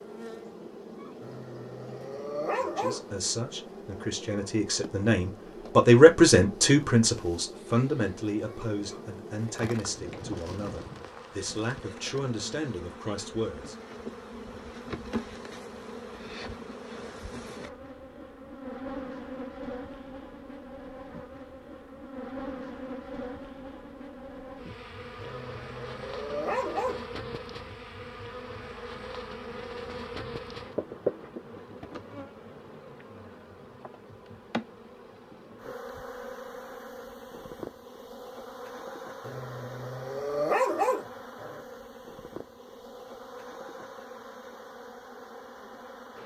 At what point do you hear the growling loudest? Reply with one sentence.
The volume of the growling peaks at 41 seconds.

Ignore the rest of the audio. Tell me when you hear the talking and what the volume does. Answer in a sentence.
You can hear the talking from 2.5 to 13.8 s, getting louder then quieter.